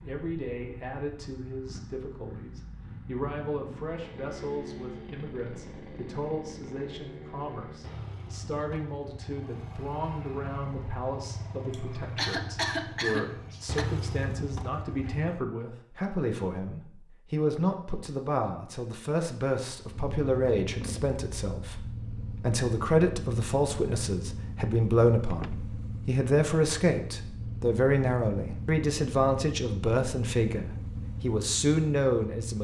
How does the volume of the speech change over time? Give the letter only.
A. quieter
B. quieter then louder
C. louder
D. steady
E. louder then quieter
C.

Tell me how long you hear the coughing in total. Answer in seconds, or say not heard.
2 s.